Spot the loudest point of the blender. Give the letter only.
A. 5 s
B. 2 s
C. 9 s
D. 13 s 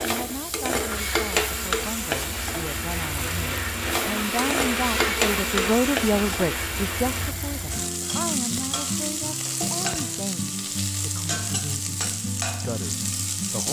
A.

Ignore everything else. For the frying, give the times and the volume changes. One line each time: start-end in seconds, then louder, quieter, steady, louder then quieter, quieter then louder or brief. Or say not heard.
0.0-13.6 steady.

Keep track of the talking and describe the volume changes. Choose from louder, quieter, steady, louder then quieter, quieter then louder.
louder then quieter.